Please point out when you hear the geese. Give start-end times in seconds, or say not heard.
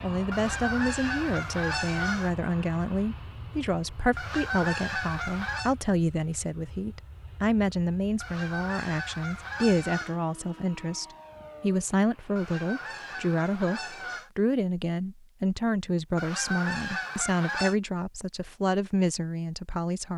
0.3-2.3, 4.2-5.8, 8.2-10.2, 12.3-14.3, 16.1-17.8.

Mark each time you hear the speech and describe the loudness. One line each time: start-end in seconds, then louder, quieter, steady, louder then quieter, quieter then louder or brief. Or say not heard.
0.0-20.1 steady.